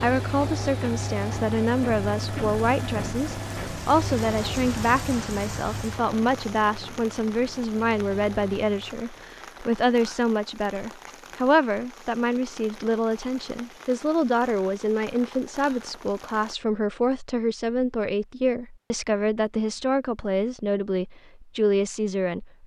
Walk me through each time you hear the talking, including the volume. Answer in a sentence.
The talking can be heard from 0.0 to 22.6 s, at a steady volume.